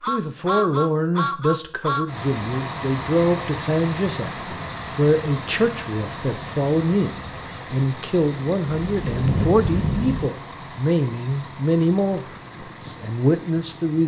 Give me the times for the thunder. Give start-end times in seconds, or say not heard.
8.7-10.3.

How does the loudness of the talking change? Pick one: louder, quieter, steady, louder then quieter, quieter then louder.
steady.